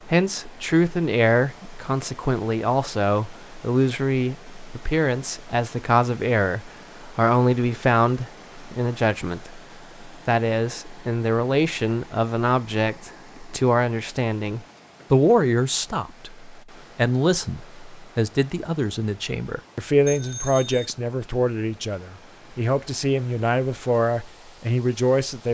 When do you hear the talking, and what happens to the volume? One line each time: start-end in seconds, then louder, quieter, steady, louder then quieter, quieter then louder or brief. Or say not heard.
0.1-25.4 steady.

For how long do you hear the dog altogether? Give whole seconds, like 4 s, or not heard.
not heard.